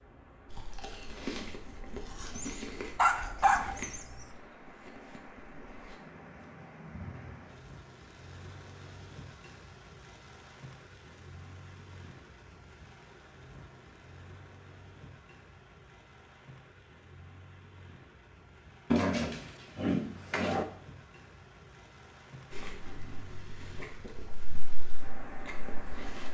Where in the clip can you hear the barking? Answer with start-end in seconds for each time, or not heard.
2.4-4.3, 18.9-20.6.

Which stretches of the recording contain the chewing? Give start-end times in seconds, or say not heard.
0.8-1.4, 2.5-5.2, 22.6-26.2.